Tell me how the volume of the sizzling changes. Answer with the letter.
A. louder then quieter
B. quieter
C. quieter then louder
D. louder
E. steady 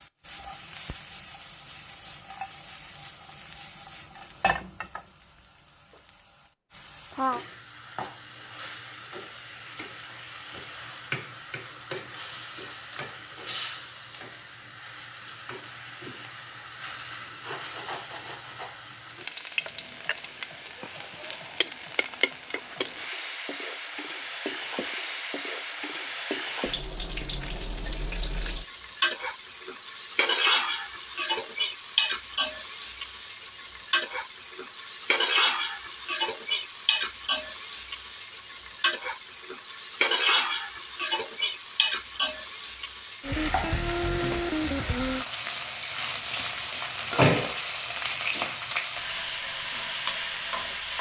D.